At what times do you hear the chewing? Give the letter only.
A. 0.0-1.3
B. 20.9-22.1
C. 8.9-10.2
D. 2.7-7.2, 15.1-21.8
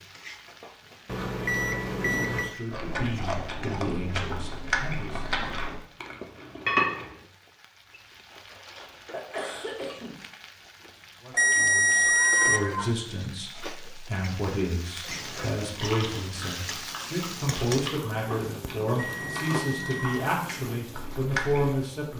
D.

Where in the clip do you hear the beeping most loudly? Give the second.
12 s.